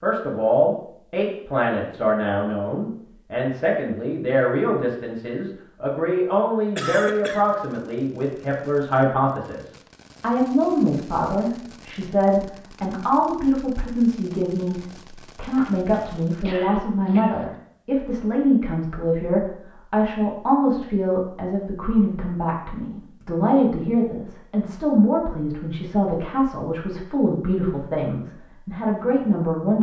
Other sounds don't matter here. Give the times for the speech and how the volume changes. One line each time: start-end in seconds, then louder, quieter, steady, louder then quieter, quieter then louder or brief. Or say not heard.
0.0-29.7 steady.